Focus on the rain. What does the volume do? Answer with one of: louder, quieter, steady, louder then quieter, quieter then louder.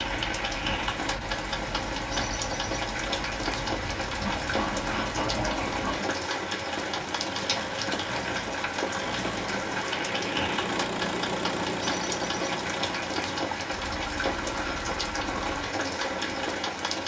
steady.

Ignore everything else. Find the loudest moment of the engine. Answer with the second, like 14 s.
11 s.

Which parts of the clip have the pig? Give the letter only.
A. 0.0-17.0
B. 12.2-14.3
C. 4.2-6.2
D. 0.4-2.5
C.